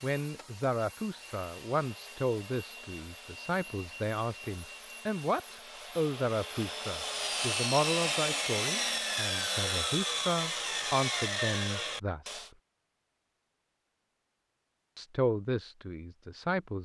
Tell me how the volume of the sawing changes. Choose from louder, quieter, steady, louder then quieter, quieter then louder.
louder.